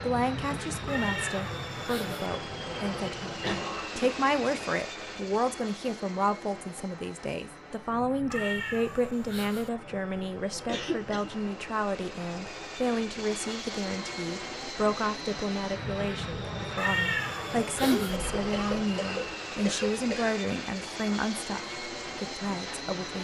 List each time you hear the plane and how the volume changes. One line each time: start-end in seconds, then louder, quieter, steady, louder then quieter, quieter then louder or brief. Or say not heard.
0.0-23.1 quieter then louder.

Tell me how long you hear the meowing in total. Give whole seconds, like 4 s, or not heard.
4 s.